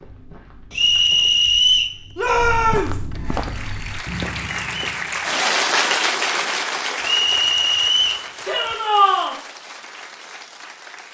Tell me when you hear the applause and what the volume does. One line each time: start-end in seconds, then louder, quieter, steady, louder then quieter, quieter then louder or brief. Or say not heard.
3.1-11.0 louder then quieter.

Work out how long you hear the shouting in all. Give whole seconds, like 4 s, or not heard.
2 s.